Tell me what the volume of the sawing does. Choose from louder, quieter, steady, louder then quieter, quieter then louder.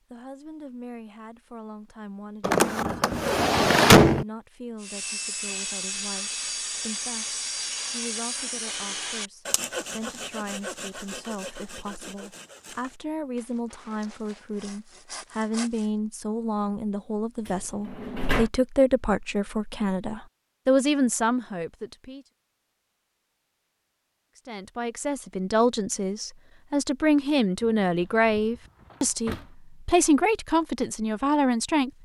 quieter.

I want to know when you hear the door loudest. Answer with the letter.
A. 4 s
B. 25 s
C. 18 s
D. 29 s
A.